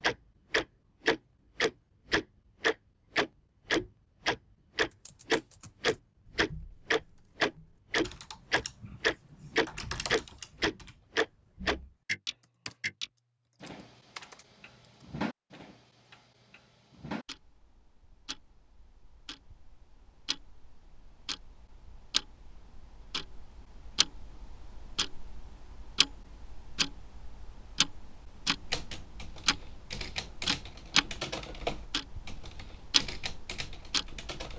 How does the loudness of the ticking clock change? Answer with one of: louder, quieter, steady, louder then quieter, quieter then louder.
quieter then louder.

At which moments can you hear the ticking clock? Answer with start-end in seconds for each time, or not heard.
0.0-34.5.